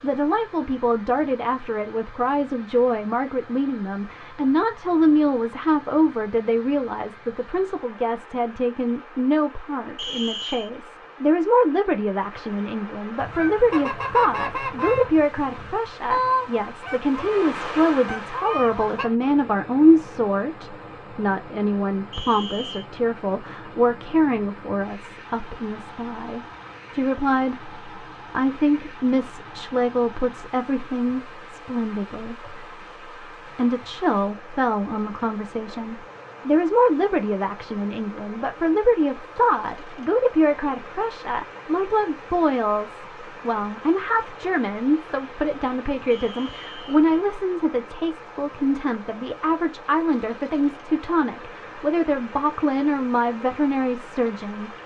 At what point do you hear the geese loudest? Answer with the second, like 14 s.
16 s.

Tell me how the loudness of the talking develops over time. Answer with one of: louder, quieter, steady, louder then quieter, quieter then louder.
steady.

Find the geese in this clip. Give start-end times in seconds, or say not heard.
13.2-19.1.